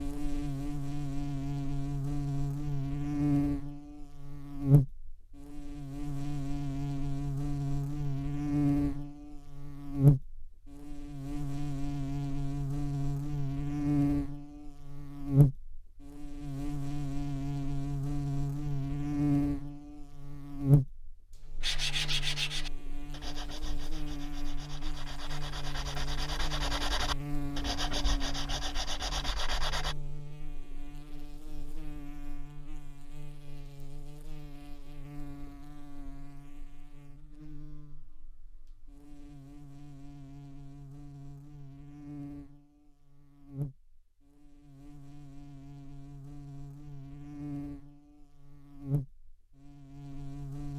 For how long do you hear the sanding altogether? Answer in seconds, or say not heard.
8 s.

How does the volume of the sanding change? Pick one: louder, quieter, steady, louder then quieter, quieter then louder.
quieter then louder.